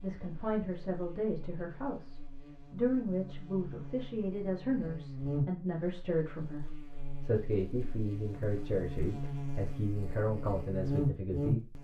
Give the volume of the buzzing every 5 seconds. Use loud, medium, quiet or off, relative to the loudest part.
quiet, medium, loud.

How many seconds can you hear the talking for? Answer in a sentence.
The talking can be heard for 12 seconds in total.